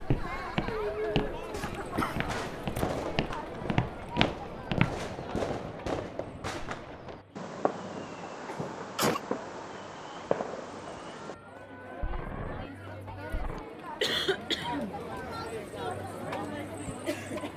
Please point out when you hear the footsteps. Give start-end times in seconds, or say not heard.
0.0-5.0.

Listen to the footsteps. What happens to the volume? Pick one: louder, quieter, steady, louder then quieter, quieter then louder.
quieter then louder.